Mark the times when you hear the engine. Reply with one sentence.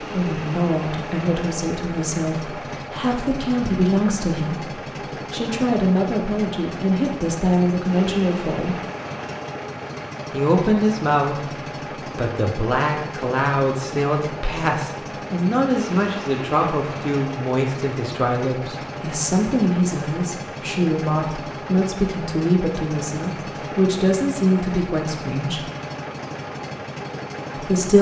You can hear the engine from 0.0 to 27.9 s.